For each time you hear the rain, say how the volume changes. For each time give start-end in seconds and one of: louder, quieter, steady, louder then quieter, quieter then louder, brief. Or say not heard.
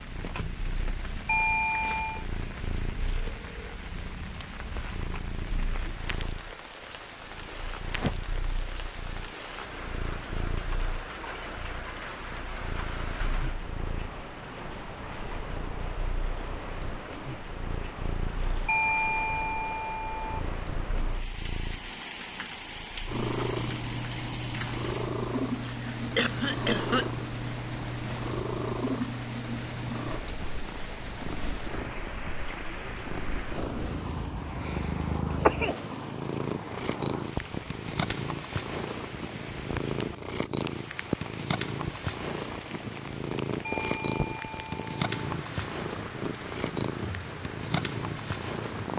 0.0-48.9 steady.